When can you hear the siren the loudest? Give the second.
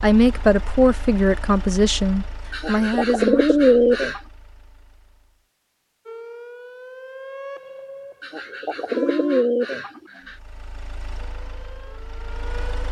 9 s.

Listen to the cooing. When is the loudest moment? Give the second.
4 s.